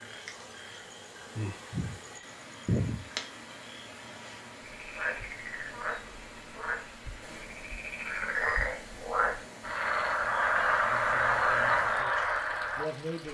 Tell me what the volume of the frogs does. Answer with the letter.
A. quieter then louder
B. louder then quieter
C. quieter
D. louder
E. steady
D.